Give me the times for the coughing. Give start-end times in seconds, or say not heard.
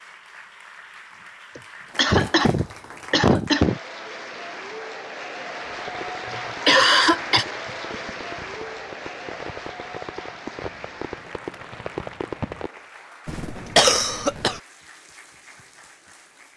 1.6-3.8, 6.2-7.5, 13.2-14.6.